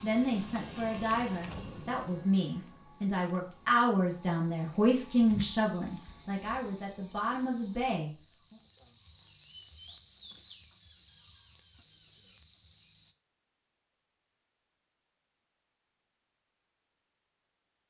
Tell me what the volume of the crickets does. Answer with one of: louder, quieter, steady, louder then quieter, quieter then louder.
louder.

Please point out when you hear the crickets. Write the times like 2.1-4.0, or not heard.
0.0-13.2.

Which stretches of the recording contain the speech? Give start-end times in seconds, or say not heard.
0.0-8.1.